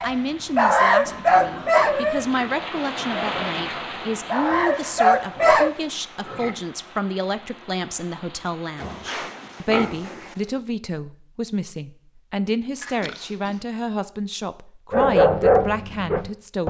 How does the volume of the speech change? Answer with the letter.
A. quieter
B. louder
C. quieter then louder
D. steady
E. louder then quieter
D.